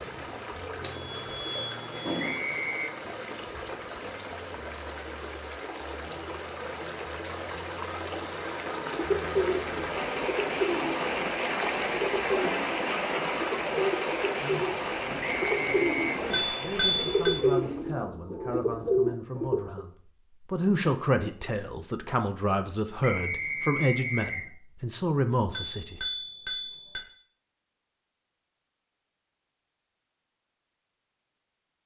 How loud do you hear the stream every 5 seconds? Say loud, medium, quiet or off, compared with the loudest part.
medium, medium, loud, medium, off, off, off.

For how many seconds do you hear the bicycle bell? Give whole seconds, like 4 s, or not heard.
4 s.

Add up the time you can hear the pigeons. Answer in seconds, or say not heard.
11 s.